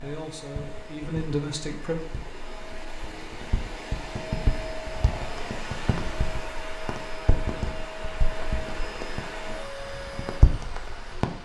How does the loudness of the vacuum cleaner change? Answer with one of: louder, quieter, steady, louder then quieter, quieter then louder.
louder.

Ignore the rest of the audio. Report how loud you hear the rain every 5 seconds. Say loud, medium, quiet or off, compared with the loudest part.
medium, medium, loud.